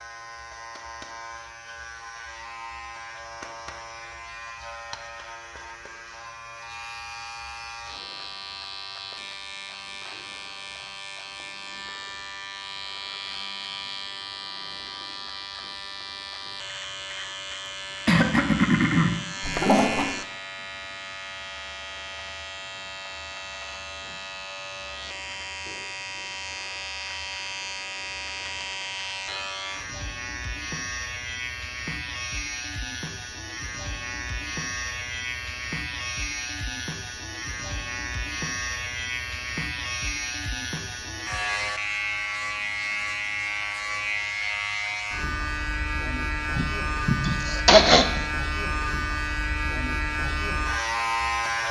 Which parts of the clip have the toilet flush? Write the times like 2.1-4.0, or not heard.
19.4-20.2.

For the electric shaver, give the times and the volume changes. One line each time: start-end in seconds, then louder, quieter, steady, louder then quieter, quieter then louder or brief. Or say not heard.
0.0-51.6 louder.